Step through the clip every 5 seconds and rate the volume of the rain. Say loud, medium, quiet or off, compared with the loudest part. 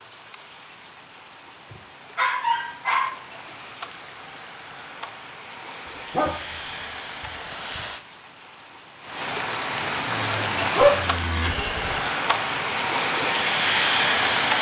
quiet, medium, loud.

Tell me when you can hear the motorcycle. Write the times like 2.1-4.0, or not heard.
10.1-12.1.